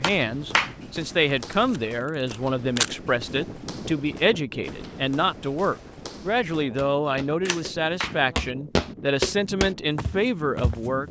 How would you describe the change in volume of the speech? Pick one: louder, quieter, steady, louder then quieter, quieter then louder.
steady.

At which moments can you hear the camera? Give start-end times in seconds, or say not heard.
1.2-3.0, 7.5-8.2.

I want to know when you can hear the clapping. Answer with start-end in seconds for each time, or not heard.
0.0-0.8, 7.5-8.2.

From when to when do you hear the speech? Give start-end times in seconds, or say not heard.
0.0-11.0.